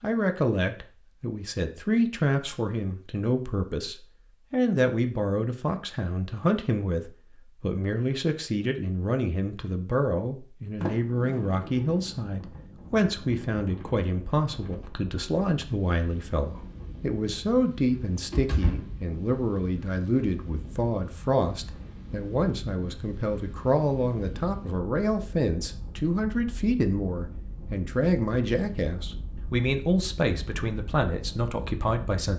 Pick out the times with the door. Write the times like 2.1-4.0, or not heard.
10.8-12.2, 18.1-18.9.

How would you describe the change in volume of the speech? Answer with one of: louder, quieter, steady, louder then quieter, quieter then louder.
steady.